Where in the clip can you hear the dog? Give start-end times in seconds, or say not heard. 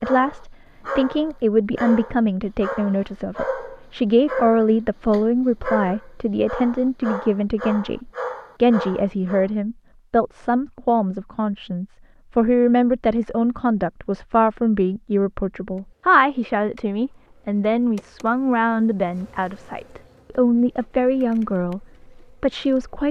0.0-9.5.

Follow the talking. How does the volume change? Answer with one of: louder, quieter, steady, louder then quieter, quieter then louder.
steady.